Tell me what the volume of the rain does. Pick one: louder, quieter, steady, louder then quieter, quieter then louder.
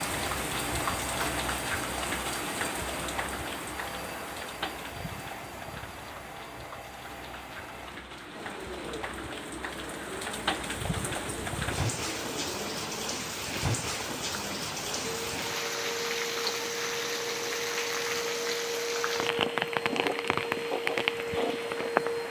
quieter then louder.